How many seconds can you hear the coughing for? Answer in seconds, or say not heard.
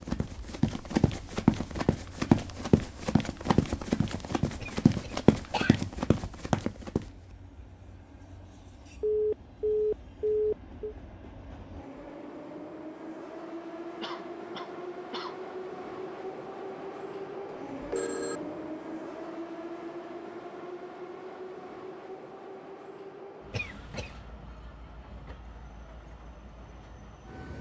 3 s.